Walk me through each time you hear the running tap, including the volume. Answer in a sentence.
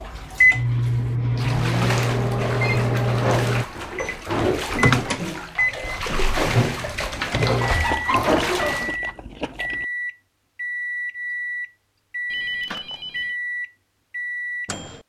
The running tap can be heard from 0.0 to 8.9 s, getting louder.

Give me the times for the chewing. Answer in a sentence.
You can hear the chewing from 7.9 to 9.8 s.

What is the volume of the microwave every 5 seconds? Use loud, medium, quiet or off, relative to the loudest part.
loud, medium, medium.